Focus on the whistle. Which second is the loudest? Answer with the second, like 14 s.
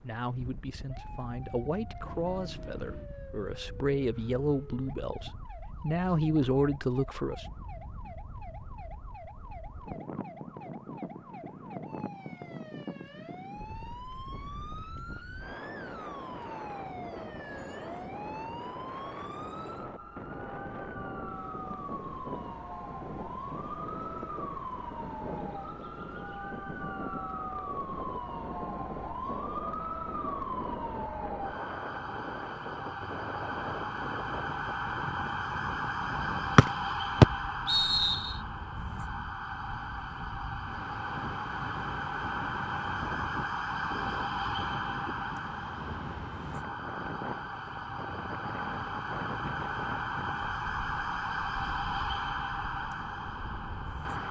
37 s.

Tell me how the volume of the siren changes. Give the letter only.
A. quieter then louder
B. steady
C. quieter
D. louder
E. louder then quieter
D.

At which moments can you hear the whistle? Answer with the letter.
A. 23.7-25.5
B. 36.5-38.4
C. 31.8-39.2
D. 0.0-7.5
B.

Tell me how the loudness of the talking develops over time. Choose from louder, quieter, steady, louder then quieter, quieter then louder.
louder.